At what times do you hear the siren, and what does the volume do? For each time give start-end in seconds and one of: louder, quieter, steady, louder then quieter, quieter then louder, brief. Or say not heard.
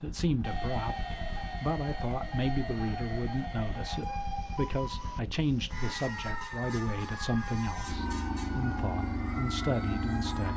0.0-10.5 steady.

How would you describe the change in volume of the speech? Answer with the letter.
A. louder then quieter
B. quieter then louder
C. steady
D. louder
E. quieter
C.